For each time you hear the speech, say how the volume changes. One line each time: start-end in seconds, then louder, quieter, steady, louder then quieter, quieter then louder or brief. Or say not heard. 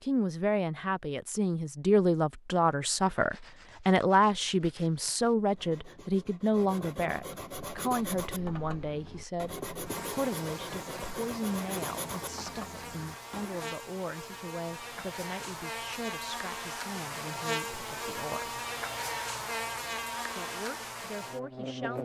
0.0-18.6 quieter
20.4-21.9 brief.